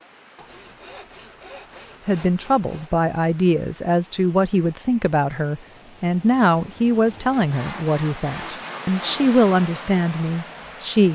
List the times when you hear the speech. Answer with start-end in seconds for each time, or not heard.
2.0-11.1.